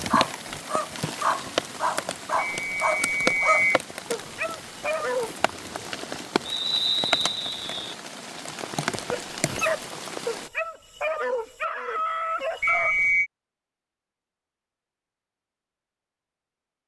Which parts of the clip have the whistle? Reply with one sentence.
You can hear the whistle from 2.5 to 3.8 s, from 6.5 to 7.8 s and from 12.6 to 13.3 s.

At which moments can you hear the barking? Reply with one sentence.
You can hear the barking from 0.0 to 5.3 s and from 9.1 to 13.1 s.